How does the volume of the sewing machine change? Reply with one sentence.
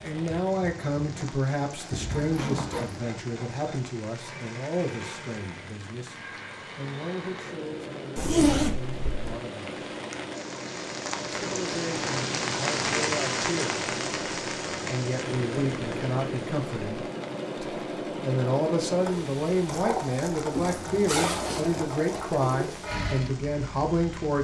The loudness of the sewing machine goes up.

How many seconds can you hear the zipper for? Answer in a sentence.
You can hear the zipper for 4 seconds altogether.